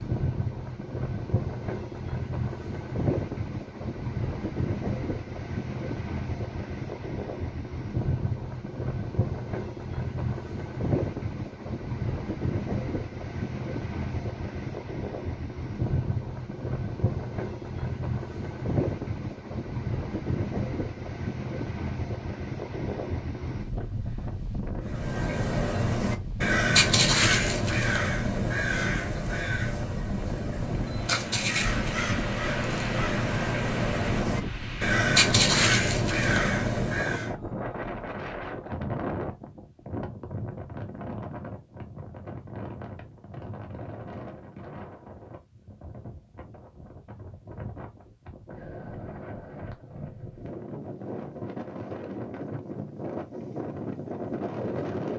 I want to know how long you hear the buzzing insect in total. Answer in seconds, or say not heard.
not heard.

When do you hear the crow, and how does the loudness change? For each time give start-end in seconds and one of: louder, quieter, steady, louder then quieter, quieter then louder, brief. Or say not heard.
24.9-37.3 quieter then louder.